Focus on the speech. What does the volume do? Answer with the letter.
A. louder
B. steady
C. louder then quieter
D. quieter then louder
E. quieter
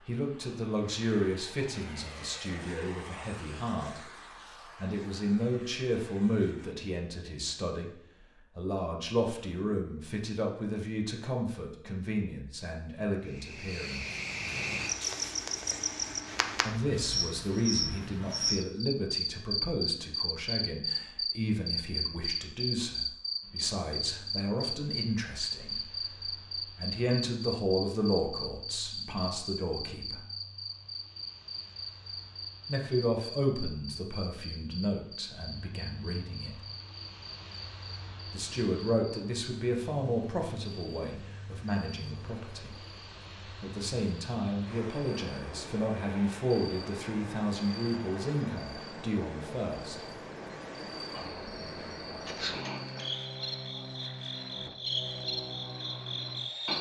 B.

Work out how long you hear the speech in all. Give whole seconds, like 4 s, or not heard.
42 s.